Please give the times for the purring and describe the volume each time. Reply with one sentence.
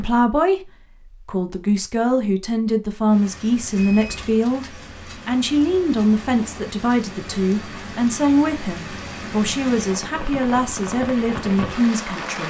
You can't hear the purring here.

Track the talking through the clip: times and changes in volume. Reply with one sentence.
You can hear the talking from 0.0 to 12.4 s, at a steady volume.